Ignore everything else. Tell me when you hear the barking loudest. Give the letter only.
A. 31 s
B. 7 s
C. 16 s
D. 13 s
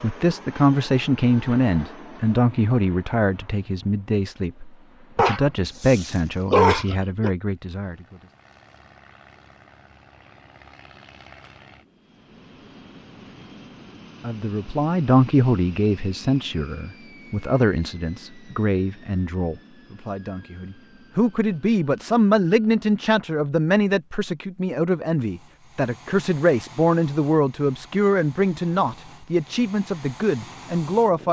B.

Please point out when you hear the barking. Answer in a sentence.
The barking can be heard from 5.2 to 7.3 s.